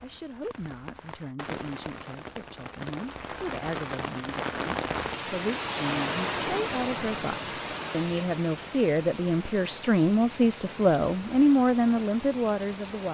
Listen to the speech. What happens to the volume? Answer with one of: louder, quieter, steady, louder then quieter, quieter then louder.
louder.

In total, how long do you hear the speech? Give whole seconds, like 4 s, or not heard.
13 s.